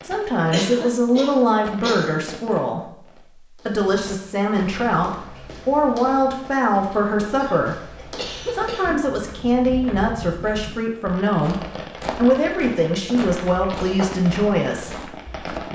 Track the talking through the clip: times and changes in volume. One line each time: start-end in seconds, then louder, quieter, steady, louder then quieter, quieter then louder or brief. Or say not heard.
0.0-15.7 steady.